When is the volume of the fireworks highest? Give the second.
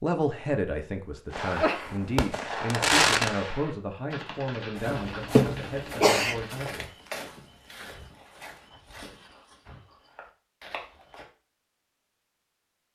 3 s.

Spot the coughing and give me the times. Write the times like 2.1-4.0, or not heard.
4.9-6.3.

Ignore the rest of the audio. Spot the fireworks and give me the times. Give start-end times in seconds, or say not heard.
1.3-6.7.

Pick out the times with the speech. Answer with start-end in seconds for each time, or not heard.
0.0-6.8.